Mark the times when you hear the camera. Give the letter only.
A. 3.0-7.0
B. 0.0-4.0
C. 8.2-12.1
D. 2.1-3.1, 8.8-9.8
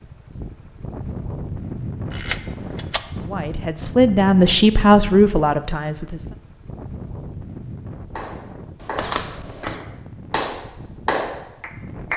D.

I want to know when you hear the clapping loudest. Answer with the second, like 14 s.
11 s.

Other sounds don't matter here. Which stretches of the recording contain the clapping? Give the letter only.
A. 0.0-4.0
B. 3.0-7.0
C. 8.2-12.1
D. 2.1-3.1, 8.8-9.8
C.